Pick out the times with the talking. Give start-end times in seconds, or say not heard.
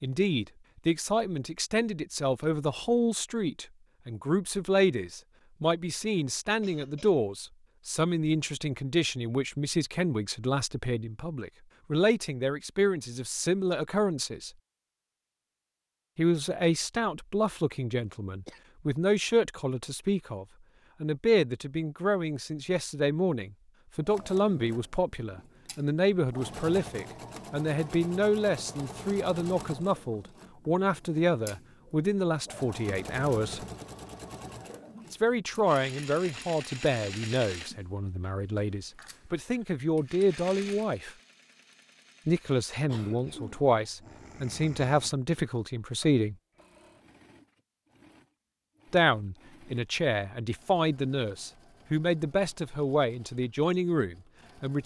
0.0-14.5, 16.1-33.6, 35.1-41.1, 42.2-46.4, 48.9-54.8.